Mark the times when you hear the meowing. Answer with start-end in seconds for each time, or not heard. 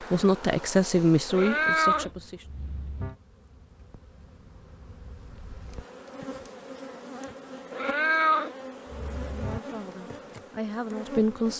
1.3-3.1, 7.7-9.6.